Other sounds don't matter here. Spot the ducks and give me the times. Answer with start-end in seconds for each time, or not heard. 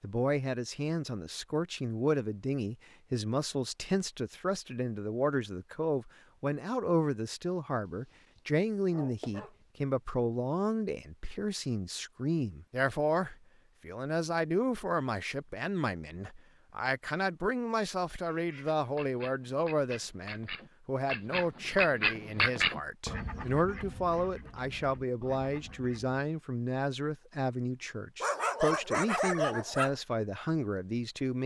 18.2-26.2.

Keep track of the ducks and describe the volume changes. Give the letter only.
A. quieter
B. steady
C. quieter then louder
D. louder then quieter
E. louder
D.